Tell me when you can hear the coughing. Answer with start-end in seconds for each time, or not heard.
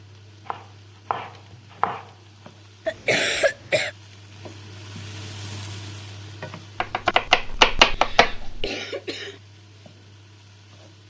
2.9-3.9, 7.8-9.4.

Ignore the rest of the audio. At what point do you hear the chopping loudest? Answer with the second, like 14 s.
8 s.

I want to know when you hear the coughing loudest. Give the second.
3 s.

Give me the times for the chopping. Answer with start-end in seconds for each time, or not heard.
0.5-2.0, 6.8-8.7.